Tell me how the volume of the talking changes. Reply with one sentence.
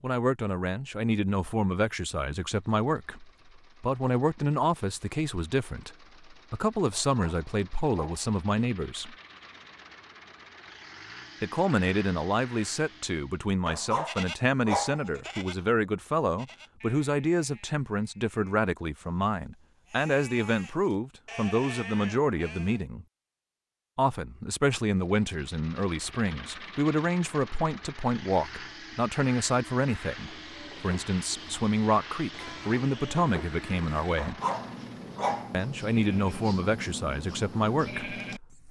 The loudness of the talking stays about the same.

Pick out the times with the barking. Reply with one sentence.
You can hear the barking from 6.9 to 8.2 s, from 13.7 to 15.1 s and from 34.1 to 35.6 s.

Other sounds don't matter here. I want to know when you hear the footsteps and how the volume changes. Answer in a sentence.
You can't hear the footsteps here.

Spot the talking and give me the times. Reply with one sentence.
The talking can be heard from 0.0 to 9.2 s, from 11.4 to 23.1 s, from 23.9 to 34.4 s and from 35.5 to 38.6 s.